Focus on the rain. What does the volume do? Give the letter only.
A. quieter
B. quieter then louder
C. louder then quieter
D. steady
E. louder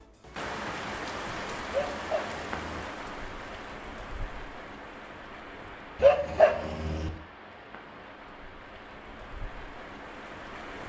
A.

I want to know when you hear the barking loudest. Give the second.
6 s.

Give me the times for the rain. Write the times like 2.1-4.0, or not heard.
0.0-10.8.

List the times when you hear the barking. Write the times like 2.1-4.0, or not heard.
1.7-2.8, 6.0-7.1.